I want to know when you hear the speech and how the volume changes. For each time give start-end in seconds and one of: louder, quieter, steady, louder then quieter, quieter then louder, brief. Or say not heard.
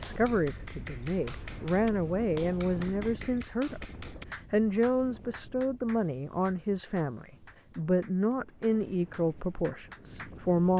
0.0-10.7 steady.